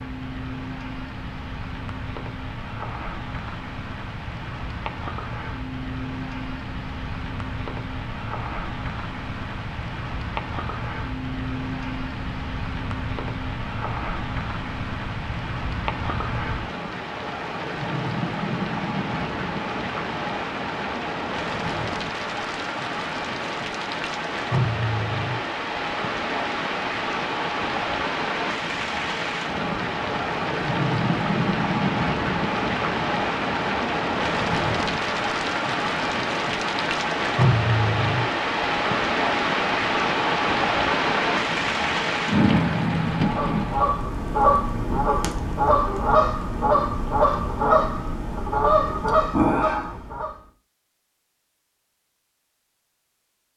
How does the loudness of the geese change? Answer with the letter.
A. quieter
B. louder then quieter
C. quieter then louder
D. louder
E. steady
E.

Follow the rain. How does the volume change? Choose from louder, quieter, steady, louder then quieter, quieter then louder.
louder.